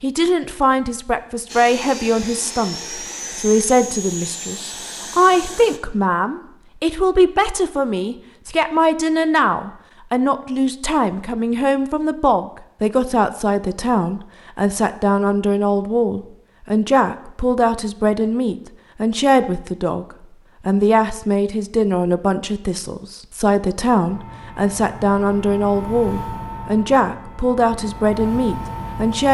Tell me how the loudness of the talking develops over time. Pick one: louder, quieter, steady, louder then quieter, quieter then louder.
steady.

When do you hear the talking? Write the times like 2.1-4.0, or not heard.
0.0-20.1, 20.6-29.2.